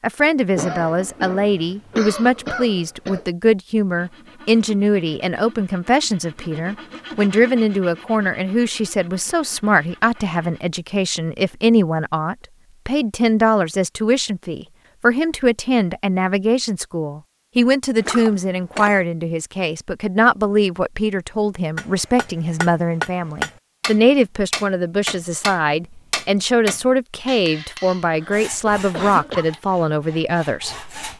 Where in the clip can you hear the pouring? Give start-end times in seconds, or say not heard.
not heard.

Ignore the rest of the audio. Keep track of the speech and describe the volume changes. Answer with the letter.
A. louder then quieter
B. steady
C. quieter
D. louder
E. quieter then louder
B.